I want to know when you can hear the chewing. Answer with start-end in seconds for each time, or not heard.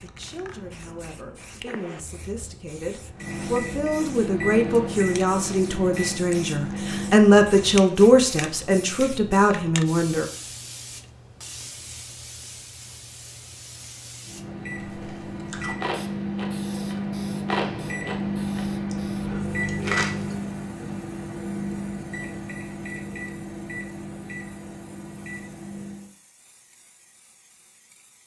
14.8-20.4.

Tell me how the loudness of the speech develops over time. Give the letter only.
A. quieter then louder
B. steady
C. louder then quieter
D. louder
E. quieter
D.